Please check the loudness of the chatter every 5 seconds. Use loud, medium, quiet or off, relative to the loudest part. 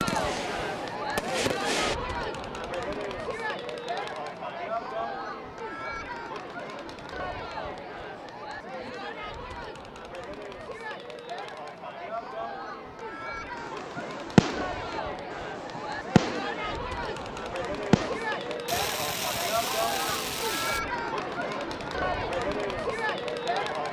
loud, medium, medium, loud, loud.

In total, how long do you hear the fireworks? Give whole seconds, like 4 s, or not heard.
9 s.